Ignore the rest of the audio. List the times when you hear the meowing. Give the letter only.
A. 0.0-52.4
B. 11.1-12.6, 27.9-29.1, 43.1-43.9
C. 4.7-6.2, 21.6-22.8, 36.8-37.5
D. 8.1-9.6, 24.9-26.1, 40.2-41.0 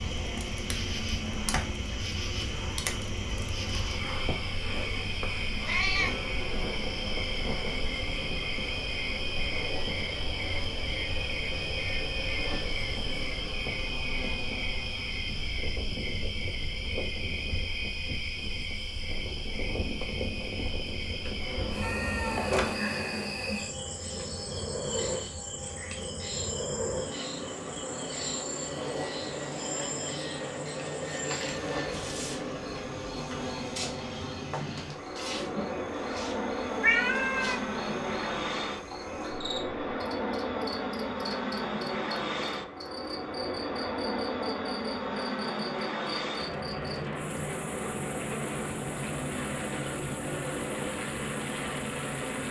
C.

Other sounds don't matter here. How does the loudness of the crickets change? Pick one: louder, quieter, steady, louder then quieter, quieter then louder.
quieter.